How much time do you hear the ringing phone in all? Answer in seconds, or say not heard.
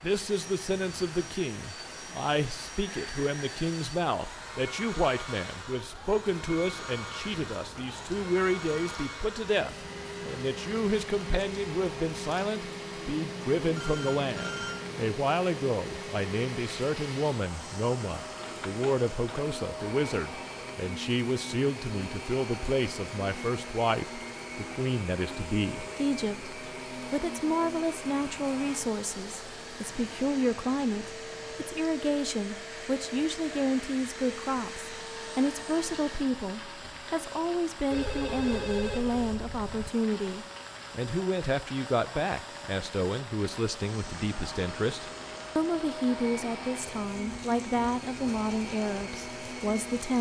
5 s.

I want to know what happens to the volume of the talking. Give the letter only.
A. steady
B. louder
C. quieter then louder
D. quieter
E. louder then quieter
A.